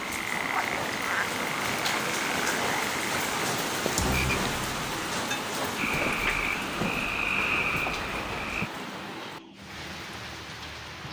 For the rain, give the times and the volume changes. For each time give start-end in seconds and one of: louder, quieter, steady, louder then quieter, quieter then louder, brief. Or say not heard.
0.0-11.0 quieter.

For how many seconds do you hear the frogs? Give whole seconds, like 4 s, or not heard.
9 s.